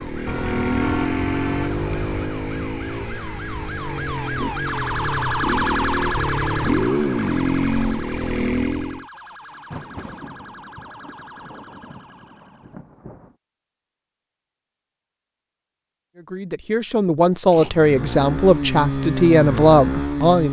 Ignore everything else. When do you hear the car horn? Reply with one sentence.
You can hear the car horn from 0.2 to 2.3 s.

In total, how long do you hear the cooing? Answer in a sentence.
You can't hear the cooing here.